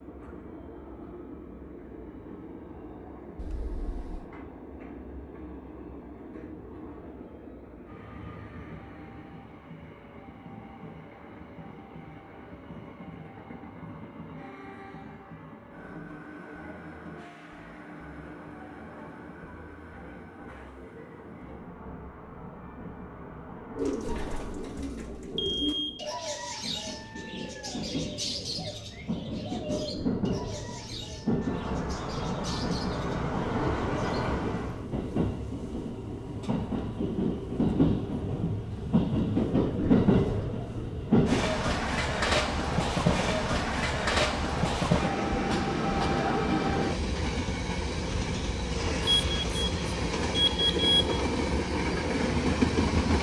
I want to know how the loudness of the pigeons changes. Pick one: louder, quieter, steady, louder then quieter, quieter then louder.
quieter.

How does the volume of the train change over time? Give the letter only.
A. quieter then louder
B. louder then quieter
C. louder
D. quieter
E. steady
C.